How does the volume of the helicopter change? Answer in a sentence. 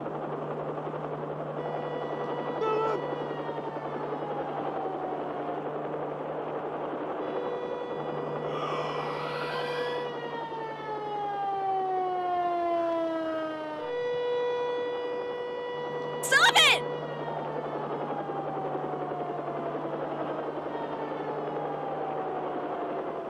The volume of the helicopter goes down, then up.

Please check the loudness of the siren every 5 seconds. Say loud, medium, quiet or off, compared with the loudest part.
medium, medium, loud, medium, medium.